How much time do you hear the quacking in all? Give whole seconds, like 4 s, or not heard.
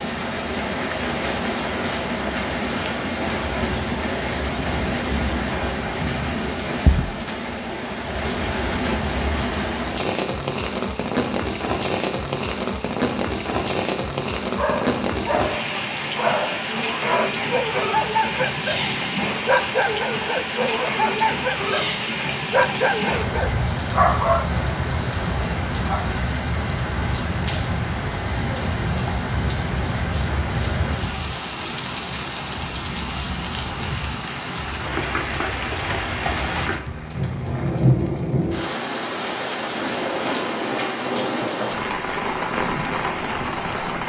not heard.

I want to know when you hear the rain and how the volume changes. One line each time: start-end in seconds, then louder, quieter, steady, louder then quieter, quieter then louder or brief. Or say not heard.
0.0-44.0 steady.